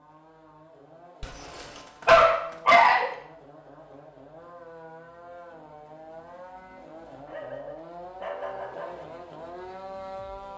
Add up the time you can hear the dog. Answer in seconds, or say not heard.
4 s.